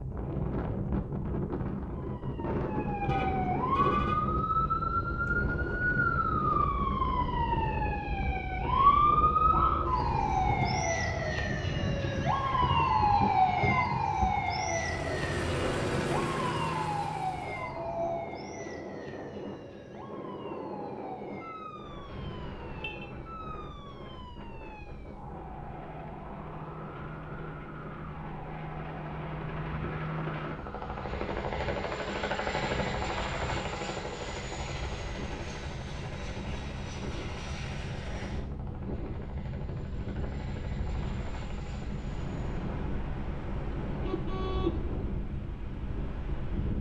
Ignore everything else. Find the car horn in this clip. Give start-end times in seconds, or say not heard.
3.0-4.2, 22.1-23.1, 43.9-45.0.